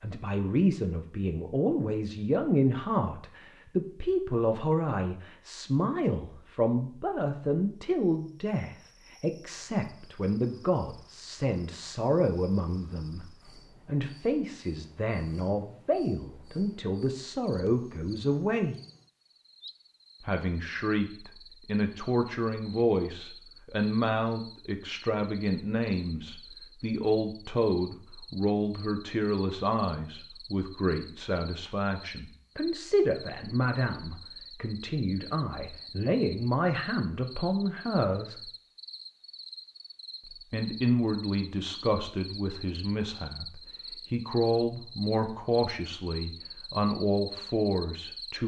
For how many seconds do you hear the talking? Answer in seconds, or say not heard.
44 s.